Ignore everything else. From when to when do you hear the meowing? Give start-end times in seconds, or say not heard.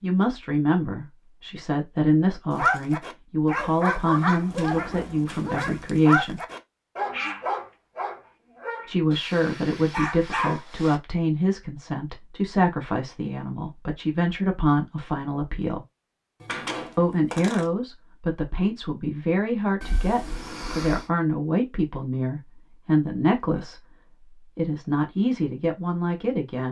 19.8-21.1.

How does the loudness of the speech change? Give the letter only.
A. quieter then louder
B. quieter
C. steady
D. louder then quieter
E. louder
C.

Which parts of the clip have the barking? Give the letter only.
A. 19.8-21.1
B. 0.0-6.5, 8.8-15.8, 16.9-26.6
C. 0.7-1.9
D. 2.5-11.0
D.